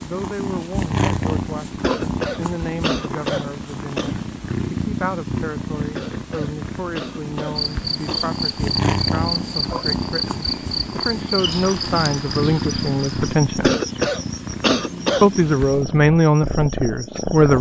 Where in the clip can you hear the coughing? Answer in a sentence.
The coughing can be heard from 1.8 to 4.1 s, from 6.0 to 8.3 s and from 13.6 to 15.3 s.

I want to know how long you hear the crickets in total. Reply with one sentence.
You can hear the crickets for 10 seconds altogether.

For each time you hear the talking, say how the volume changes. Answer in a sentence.
You can hear the talking from 0.0 to 13.7 s, getting louder; and briefly from 15.2 to 17.5 s.